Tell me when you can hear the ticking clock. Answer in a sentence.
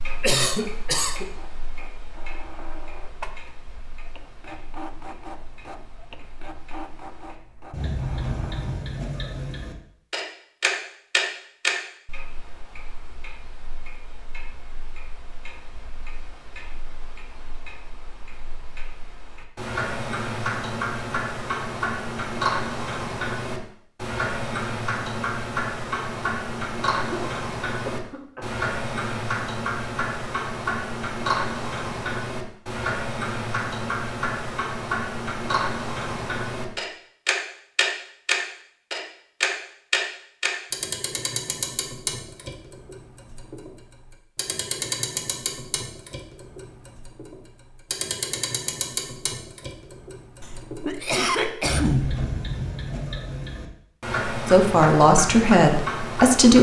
You can hear the ticking clock from 0.0 to 56.5 s.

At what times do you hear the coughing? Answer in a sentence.
The coughing can be heard from 0.2 to 1.2 s, from 27.1 to 28.6 s and from 50.4 to 52.2 s.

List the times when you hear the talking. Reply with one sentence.
You can hear the talking from 54.5 to 56.5 s.